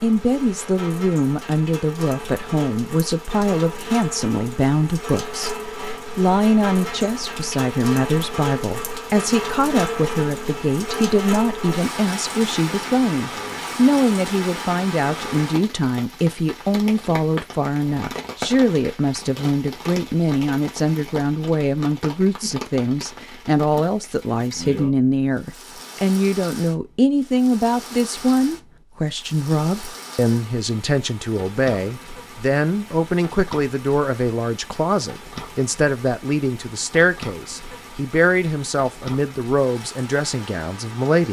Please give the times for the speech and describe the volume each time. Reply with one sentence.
You can hear the speech from 0.0 to 41.2 s, at a steady volume.